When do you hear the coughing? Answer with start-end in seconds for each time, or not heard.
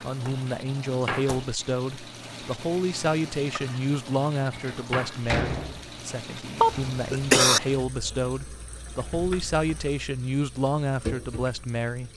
6.5-7.6.